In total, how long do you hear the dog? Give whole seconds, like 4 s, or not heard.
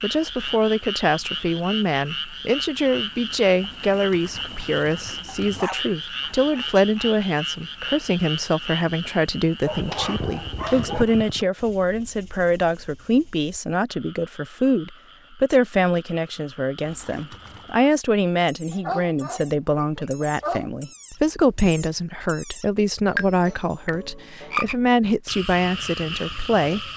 6 s.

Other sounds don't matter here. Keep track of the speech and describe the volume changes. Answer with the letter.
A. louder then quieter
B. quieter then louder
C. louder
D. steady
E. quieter
D.